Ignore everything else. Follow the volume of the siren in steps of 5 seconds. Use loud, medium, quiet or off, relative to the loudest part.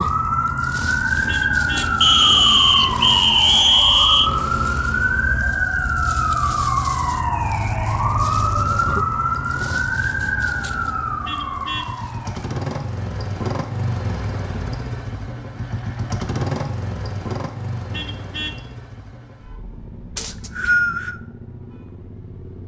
loud, loud, medium, off, off.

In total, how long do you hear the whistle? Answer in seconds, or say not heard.
3 s.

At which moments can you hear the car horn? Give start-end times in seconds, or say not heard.
1.2-1.9, 11.2-11.9, 17.9-18.6.